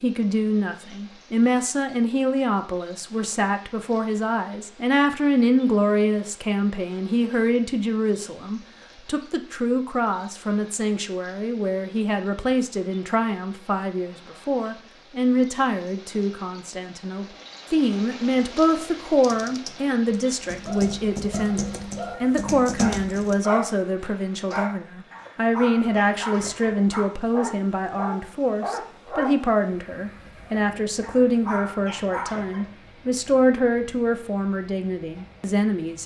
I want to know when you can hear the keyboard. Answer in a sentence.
The keyboard can be heard from 18.3 to 23.4 s.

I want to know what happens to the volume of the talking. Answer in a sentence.
The volume of the talking stays about the same.